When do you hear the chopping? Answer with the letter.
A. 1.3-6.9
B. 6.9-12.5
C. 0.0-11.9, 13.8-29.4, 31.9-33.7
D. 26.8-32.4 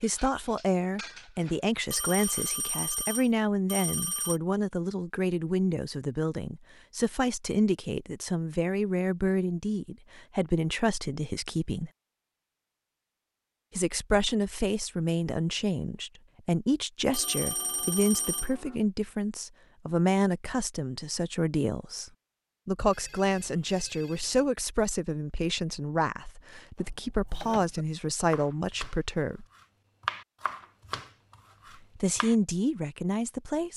D.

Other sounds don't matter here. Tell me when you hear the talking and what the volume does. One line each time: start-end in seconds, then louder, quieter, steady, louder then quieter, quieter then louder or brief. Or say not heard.
0.0-11.9 steady
13.8-29.4 steady
31.9-33.7 brief.